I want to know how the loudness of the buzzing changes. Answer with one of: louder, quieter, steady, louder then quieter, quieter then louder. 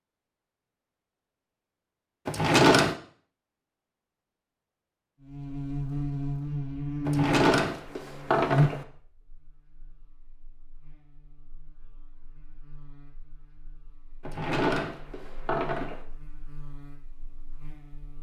quieter then louder.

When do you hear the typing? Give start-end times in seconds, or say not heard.
not heard.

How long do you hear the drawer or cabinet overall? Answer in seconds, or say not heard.
4 s.